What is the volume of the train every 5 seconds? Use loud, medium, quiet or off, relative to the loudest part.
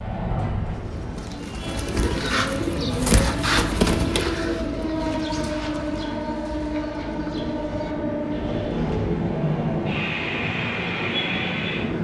medium, loud, loud.